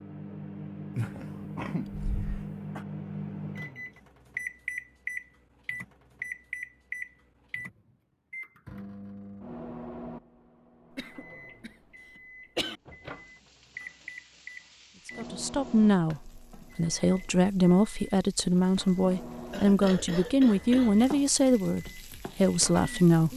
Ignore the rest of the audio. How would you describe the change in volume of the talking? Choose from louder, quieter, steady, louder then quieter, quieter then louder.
steady.